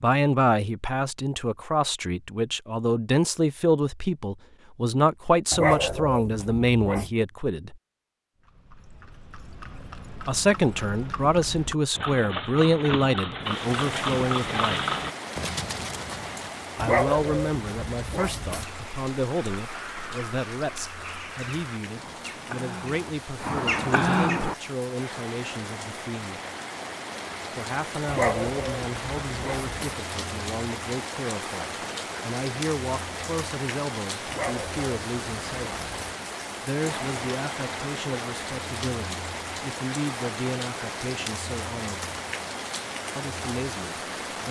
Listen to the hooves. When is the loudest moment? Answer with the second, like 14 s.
15 s.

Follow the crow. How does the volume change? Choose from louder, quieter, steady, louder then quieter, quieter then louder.
louder.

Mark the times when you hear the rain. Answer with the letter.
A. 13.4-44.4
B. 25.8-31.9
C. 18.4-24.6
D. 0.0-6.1
A.